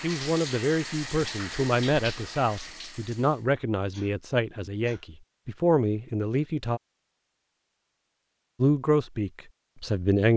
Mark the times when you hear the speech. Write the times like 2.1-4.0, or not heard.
0.0-6.8, 8.6-10.3.